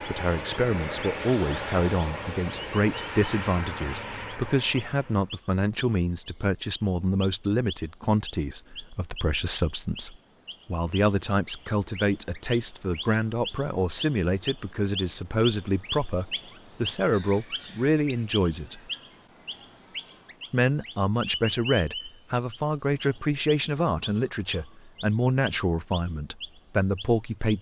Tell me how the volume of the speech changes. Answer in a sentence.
The loudness of the speech stays about the same.